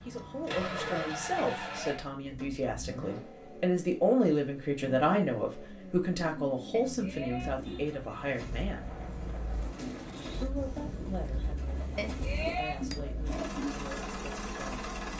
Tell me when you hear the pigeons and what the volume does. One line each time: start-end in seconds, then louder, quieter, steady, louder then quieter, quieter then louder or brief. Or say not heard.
7.5-13.8 louder.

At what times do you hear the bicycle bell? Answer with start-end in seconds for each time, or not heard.
1.6-2.0, 6.7-7.5, 11.9-13.0.